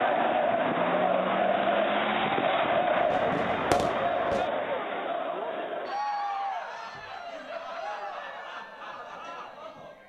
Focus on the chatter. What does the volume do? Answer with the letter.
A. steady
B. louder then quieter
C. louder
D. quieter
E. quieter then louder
D.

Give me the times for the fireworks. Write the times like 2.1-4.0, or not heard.
3.0-4.5.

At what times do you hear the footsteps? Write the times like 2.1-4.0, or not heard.
not heard.